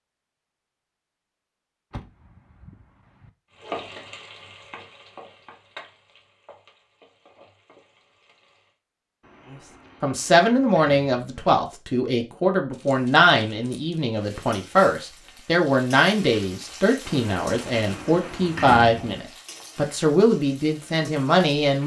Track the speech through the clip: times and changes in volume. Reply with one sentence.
The speech can be heard from 9.5 to 21.8 s, at a steady volume.